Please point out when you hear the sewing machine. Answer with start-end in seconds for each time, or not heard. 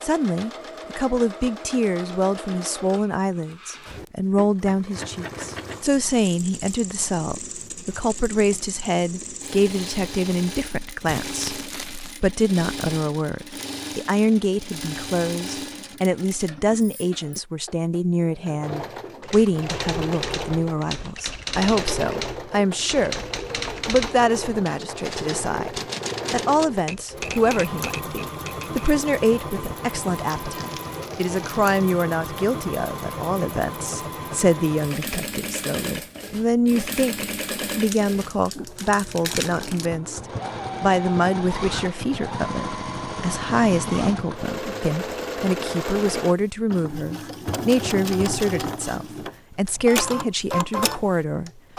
0.0-51.7.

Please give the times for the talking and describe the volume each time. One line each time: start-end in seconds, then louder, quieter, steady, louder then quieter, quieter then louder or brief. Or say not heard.
0.0-23.2 steady
23.9-40.2 steady
40.8-51.6 steady.